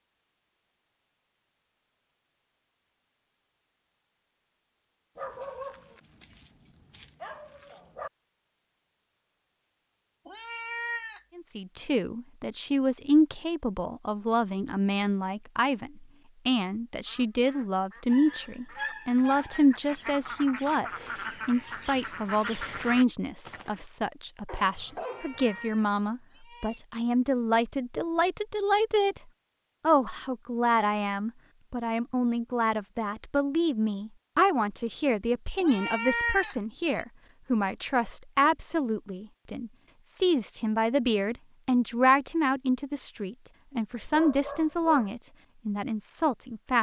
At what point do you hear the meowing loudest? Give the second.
36 s.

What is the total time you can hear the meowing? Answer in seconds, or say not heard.
4 s.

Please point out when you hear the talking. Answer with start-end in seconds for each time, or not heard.
11.3-29.2, 29.8-46.7.